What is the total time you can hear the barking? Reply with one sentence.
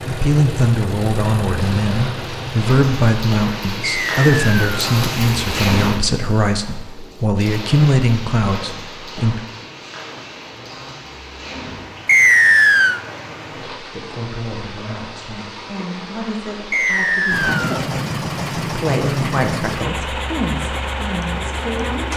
The barking can't be heard in this clip.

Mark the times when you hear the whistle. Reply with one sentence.
You can hear the whistle from 3.8 to 4.7 s, from 12.1 to 13.0 s and from 16.7 to 17.9 s.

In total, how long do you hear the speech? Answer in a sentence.
You can hear the speech for 18 seconds altogether.